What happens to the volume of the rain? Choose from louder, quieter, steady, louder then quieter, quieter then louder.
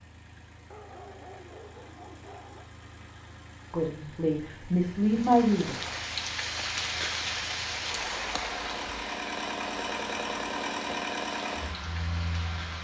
quieter.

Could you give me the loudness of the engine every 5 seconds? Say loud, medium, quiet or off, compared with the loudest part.
quiet, medium, loud.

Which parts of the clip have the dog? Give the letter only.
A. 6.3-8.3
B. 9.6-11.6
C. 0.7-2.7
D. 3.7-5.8
C.